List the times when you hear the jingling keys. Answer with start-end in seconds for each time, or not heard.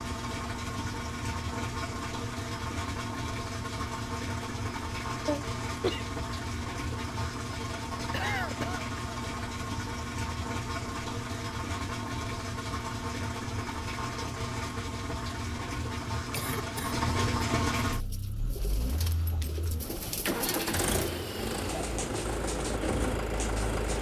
18.9-19.9.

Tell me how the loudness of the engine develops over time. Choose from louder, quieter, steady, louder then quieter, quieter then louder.
steady.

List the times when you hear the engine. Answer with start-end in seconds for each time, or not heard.
0.0-23.9.